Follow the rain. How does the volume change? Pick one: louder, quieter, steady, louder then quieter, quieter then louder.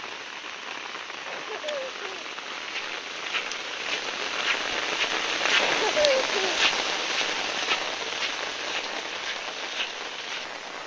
louder then quieter.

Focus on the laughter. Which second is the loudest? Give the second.
6 s.